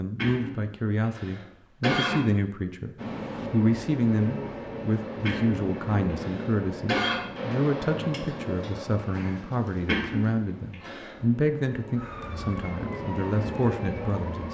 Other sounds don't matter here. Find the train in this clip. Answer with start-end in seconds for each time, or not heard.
3.0-14.4.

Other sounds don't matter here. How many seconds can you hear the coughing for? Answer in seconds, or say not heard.
5 s.